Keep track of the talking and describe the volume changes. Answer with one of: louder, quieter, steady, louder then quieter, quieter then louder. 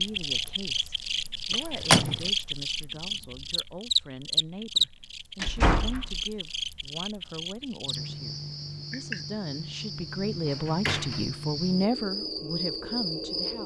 louder.